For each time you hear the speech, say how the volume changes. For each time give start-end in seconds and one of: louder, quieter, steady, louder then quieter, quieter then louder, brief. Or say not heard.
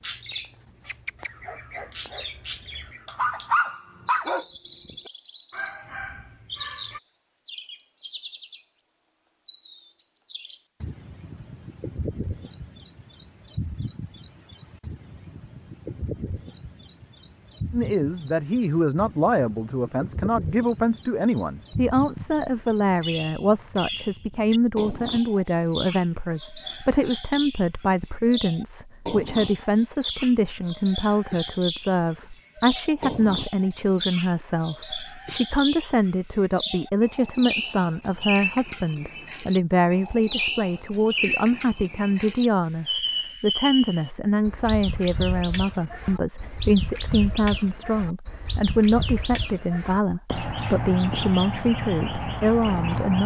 17.7-53.2 steady.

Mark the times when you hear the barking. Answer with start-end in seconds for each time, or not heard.
0.8-7.0.